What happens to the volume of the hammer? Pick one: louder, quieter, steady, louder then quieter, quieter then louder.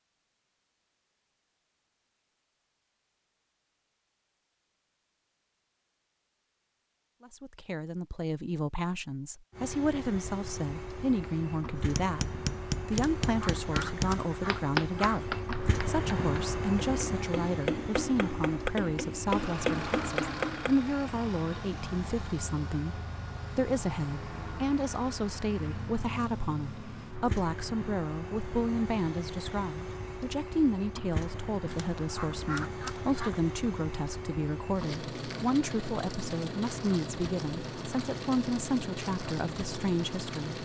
steady.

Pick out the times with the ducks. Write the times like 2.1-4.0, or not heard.
12.9-15.2, 31.6-33.5.